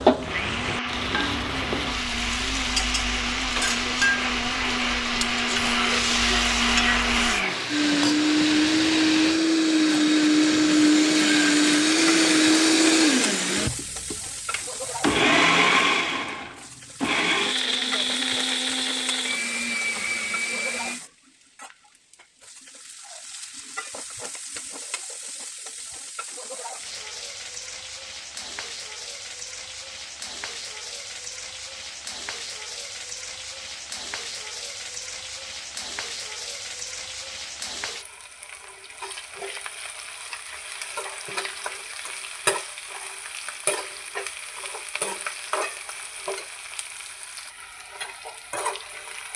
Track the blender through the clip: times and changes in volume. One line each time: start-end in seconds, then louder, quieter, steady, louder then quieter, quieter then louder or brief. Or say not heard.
0.1-21.0 louder then quieter.